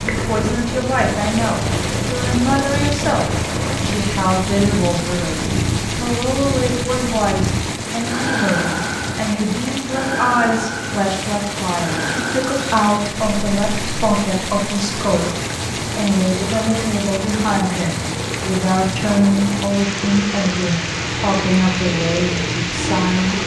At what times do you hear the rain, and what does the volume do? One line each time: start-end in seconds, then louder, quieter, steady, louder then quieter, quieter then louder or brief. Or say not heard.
0.0-23.4 steady.